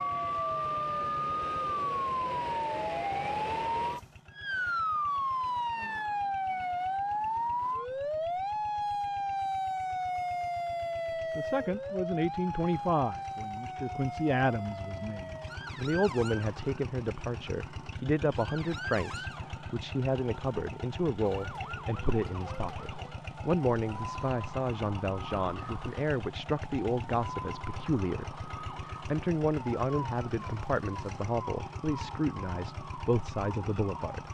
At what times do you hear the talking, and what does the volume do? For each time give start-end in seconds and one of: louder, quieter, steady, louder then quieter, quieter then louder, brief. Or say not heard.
11.3-34.2 steady.